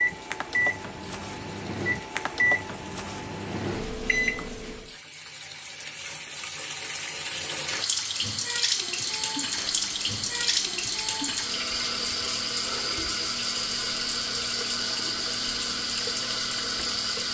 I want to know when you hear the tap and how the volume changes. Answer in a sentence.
The tap can be heard from 0.0 to 17.2 s, getting louder.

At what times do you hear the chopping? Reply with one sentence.
You can't hear the chopping here.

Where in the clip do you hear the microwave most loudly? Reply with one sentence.
The volume of the microwave peaks at 2 seconds.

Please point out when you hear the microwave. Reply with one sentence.
You can hear the microwave from 0.0 to 5.0 s and from 8.8 to 17.2 s.